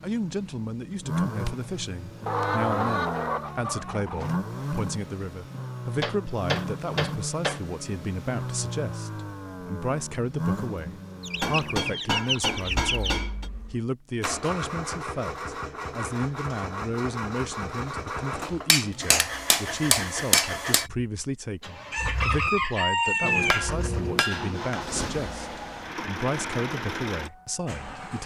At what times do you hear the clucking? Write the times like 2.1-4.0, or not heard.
2.2-4.4, 11.2-13.2, 21.9-23.7.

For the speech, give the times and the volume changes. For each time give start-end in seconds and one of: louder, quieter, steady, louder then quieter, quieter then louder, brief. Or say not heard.
0.0-28.2 steady.